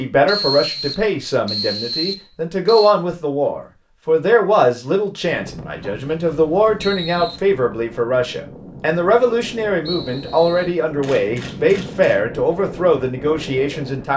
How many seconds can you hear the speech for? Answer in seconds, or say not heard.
14 s.